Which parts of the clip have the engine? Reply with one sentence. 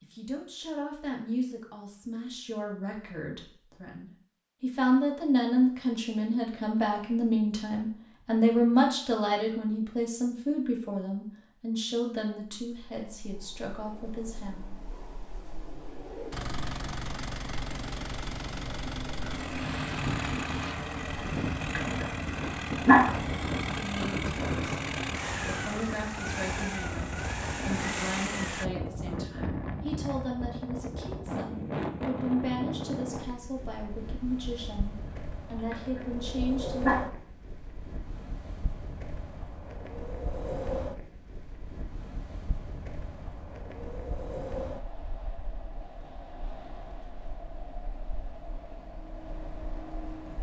The engine can be heard from 16.3 to 28.7 s.